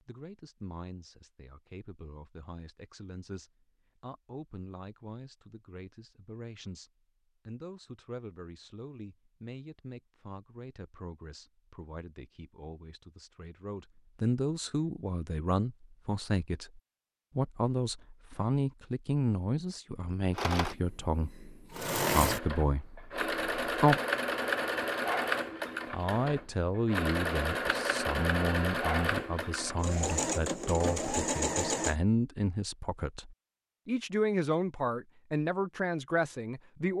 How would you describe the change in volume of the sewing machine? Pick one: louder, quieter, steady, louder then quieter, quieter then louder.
steady.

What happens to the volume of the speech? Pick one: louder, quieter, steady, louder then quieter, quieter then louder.
louder.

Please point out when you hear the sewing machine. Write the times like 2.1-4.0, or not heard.
20.4-31.9.